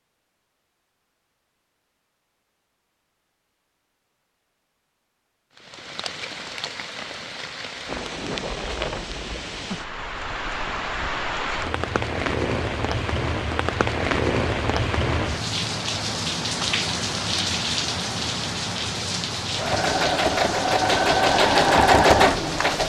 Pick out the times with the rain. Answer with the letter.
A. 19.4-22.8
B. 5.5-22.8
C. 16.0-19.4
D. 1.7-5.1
B.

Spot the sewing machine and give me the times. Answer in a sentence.
You can hear the sewing machine from 19.4 to 22.8 s.